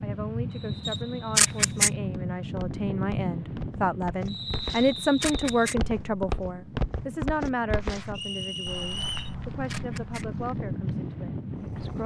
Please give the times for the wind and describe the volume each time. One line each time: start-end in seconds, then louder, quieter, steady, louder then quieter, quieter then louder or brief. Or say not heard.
0.0-12.0 quieter then louder.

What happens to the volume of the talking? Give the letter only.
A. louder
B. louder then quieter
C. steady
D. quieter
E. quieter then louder
B.